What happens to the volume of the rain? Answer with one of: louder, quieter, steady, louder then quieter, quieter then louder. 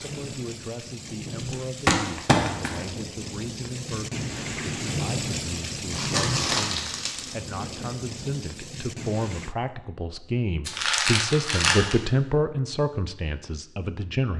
louder then quieter.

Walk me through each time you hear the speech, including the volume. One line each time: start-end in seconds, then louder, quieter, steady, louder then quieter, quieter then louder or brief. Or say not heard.
0.0-14.3 louder.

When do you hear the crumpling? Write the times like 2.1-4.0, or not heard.
1.9-2.8, 5.9-7.3, 10.7-12.0.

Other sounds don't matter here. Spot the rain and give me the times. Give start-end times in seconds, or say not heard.
0.0-9.6.